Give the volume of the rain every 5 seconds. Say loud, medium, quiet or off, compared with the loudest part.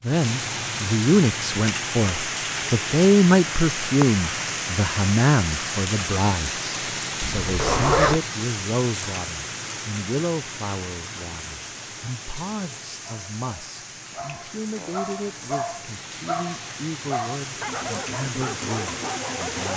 loud, loud, medium, medium.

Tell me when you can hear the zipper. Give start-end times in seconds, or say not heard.
7.2-8.2.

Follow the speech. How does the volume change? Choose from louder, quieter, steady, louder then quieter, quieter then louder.
quieter.